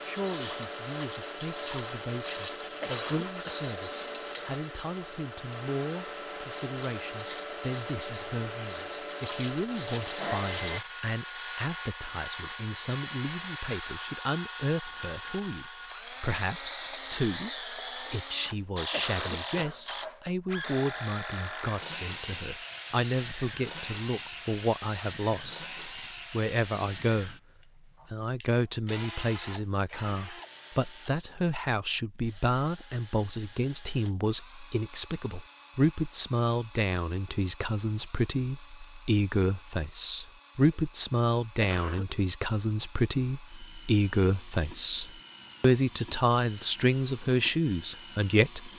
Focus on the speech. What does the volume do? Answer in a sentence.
The loudness of the speech goes up.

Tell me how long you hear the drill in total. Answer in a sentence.
You can hear the drill for 49 seconds altogether.